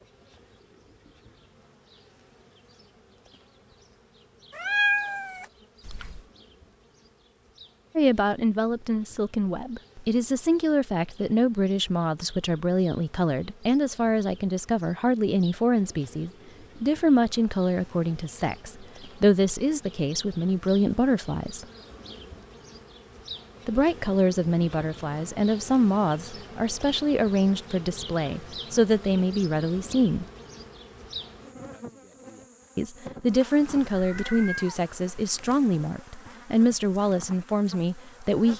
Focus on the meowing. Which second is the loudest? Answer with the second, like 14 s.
5 s.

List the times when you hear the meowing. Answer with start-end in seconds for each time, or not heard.
4.5-6.2, 33.9-35.4.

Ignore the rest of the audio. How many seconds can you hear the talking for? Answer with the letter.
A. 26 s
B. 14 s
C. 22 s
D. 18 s
A.